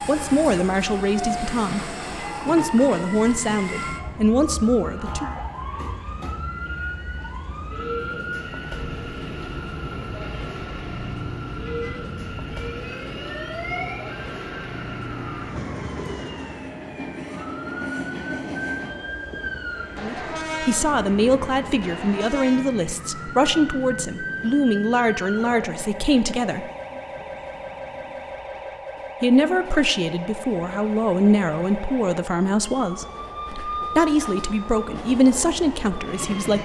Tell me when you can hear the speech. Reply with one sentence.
You can hear the speech from 0.1 to 5.4 s, from 19.9 to 26.7 s and from 29.2 to 36.6 s.